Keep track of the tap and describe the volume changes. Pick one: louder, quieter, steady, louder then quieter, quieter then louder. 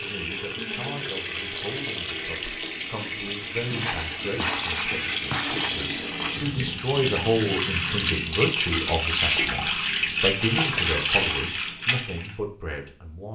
louder.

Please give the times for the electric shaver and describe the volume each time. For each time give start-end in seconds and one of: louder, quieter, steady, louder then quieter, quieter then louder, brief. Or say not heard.
not heard.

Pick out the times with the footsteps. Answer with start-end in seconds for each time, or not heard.
3.6-6.4.